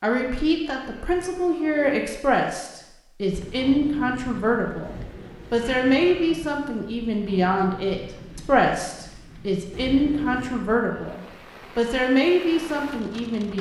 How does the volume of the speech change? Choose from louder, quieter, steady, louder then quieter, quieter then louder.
steady.